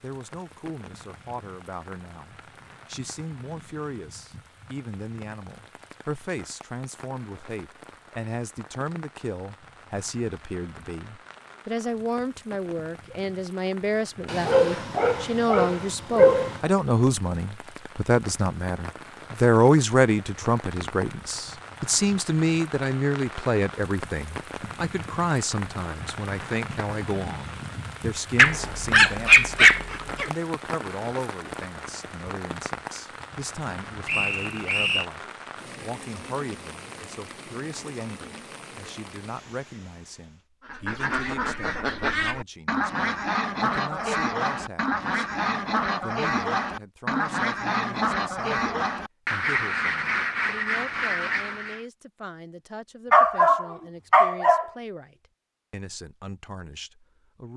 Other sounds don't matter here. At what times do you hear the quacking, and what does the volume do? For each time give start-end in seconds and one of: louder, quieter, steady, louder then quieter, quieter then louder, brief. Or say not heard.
40.6-51.9 steady.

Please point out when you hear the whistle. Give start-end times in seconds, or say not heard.
34.0-35.0.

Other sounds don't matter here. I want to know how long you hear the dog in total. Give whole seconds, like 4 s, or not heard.
6 s.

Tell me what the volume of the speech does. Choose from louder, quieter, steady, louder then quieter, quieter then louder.
louder then quieter.